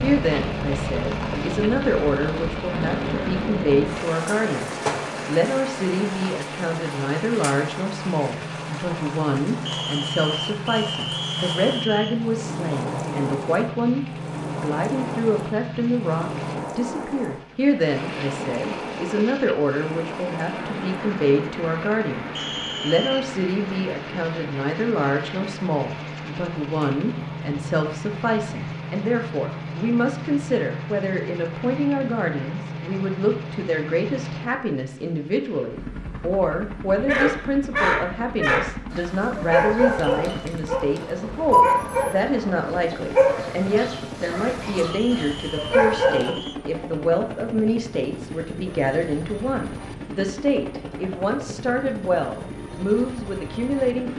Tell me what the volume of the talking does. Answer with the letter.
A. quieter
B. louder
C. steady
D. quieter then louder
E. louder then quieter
C.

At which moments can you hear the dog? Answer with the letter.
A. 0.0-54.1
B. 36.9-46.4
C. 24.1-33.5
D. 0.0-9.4
B.